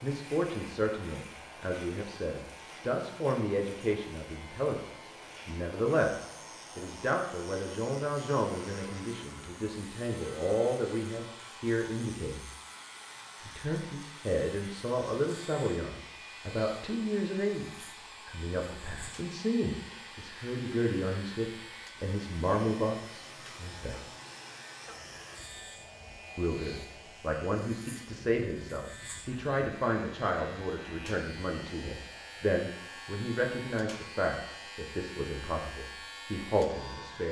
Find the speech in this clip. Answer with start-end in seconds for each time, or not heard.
0.0-12.4, 13.4-24.0, 26.4-37.2.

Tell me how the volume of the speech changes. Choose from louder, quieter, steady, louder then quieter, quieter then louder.
steady.